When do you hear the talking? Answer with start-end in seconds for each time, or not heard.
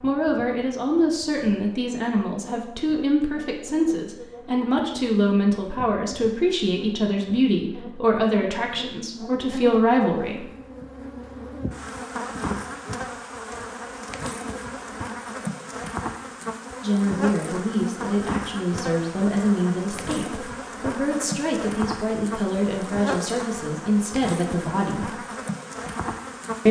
0.0-10.4, 16.8-25.1.